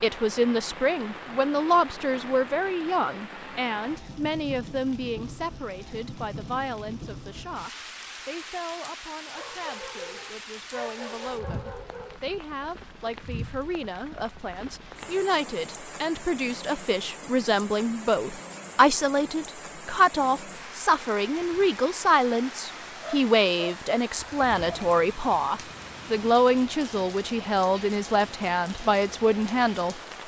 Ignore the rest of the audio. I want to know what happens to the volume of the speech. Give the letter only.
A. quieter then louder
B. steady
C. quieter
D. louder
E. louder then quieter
A.